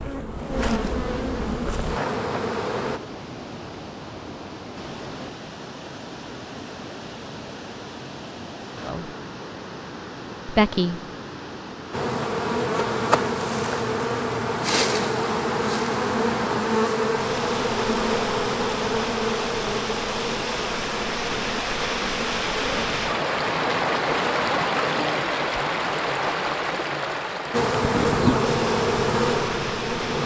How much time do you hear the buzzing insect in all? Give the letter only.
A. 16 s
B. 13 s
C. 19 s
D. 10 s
C.